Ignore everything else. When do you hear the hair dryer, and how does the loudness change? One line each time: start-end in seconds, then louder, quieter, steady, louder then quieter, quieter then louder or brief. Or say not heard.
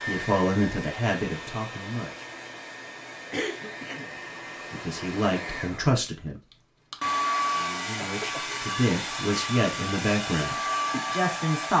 0.0-11.7 louder.